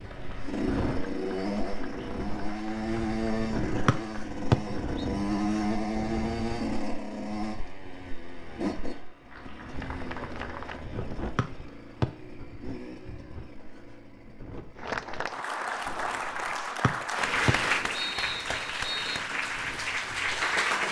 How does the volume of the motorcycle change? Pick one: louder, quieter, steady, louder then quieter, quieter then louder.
quieter.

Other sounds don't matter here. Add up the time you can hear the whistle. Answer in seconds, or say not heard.
4 s.